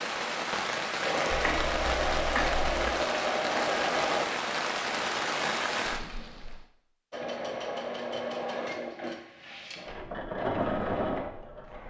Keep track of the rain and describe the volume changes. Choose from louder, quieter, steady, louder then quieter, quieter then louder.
steady.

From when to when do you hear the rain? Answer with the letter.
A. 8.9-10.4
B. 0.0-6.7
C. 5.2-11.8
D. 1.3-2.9
B.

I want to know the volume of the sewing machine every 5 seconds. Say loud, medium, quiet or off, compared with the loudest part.
loud, medium, loud.